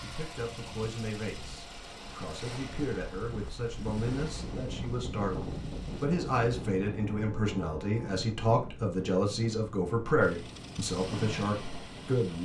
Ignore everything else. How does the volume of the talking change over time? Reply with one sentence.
The volume of the talking goes up.